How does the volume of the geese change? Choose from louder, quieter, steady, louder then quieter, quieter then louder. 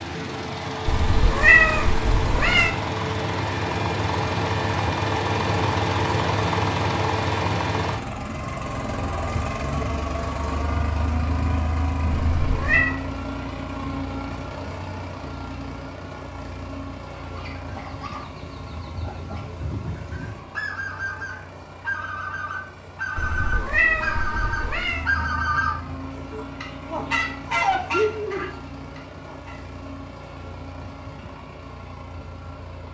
louder.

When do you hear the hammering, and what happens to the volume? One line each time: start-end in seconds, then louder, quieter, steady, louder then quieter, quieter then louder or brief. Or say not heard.
not heard.